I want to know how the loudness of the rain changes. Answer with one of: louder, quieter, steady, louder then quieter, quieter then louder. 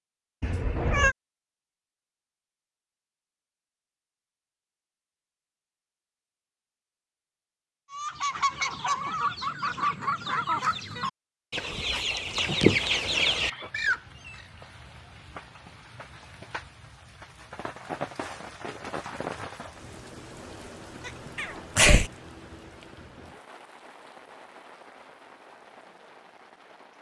louder then quieter.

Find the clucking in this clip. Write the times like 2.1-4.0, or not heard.
7.9-14.4.